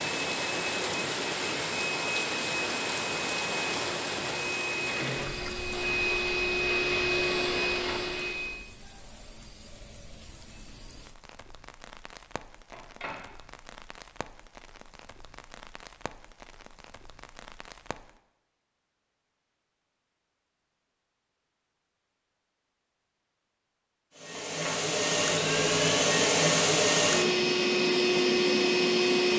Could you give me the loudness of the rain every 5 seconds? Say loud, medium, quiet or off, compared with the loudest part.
loud, quiet, quiet, quiet, off, off.